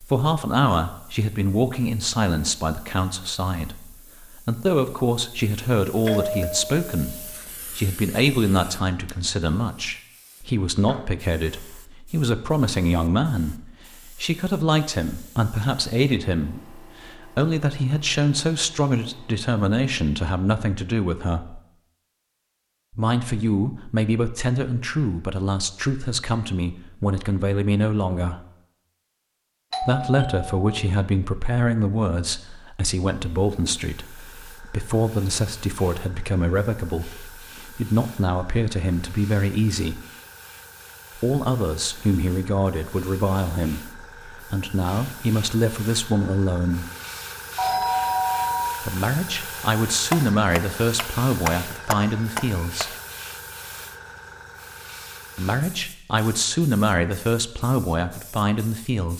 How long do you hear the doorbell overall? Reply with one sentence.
You can hear the doorbell for 4 seconds altogether.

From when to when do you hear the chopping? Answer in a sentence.
You can hear the chopping from 50.1 to 52.9 s.